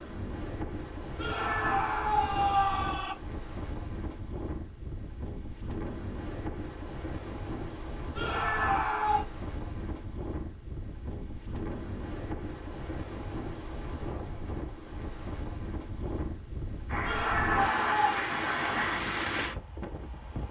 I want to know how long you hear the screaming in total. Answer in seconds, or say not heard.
4 s.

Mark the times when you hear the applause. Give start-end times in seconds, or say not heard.
16.9-19.0.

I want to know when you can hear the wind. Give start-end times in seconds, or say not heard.
0.0-20.4.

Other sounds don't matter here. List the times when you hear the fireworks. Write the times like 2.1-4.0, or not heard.
not heard.